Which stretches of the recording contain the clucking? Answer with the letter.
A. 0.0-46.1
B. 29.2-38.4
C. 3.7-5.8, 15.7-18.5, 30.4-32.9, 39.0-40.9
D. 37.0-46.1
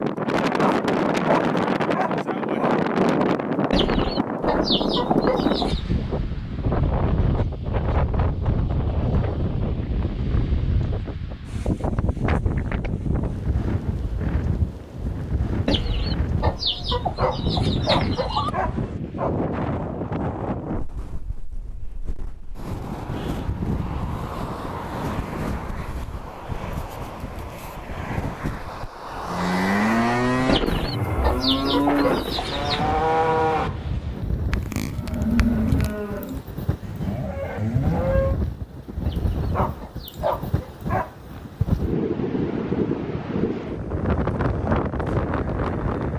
C.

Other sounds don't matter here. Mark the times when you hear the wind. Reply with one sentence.
The wind can be heard from 0.0 to 46.1 s.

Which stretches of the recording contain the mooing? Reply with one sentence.
The mooing can be heard from 29.2 to 38.4 s.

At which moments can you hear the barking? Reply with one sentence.
You can hear the barking from 0.6 to 2.8 s, from 17.1 to 19.3 s and from 39.5 to 41.1 s.